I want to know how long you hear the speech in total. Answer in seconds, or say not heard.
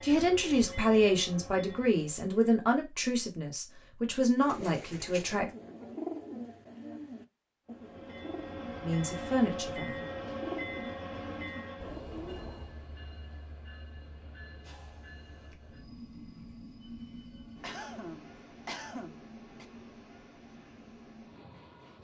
7 s.